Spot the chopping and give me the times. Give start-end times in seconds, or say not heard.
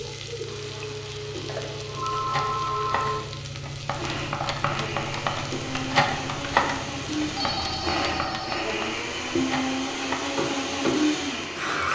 not heard.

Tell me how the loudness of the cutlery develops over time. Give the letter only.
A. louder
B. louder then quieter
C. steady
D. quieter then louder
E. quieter
B.